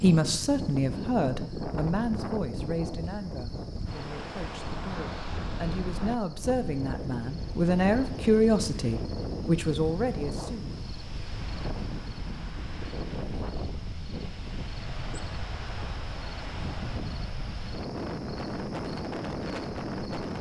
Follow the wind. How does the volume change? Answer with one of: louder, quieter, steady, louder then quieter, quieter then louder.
steady.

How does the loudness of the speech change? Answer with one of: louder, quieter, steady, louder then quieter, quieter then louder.
quieter then louder.